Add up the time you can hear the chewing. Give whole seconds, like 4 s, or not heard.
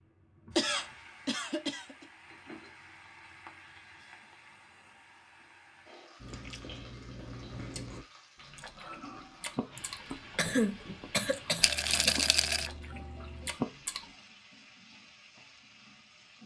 8 s.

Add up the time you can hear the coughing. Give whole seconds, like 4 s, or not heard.
4 s.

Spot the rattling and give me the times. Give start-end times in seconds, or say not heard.
11.6-12.7.